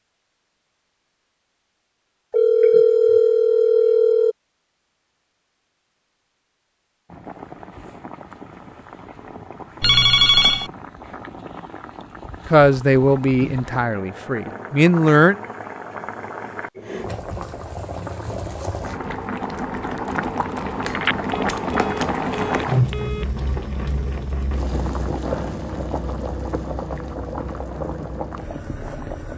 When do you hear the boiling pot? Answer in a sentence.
The boiling pot can be heard from 7.0 to 29.3 s.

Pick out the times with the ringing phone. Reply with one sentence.
The ringing phone can be heard from 2.3 to 4.3 s, from 9.8 to 10.7 s and from 20.9 to 23.2 s.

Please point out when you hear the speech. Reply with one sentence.
You can hear the speech from 12.5 to 15.3 s.